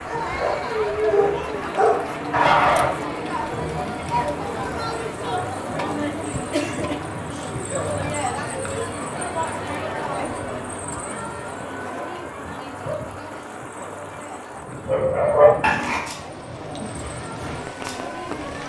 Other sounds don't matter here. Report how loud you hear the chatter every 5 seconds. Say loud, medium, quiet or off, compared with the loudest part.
loud, loud, medium, medium.